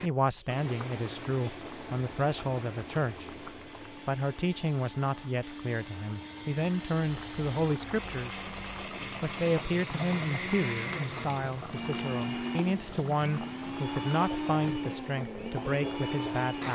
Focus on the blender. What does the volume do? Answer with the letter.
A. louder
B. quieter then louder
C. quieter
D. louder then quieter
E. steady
A.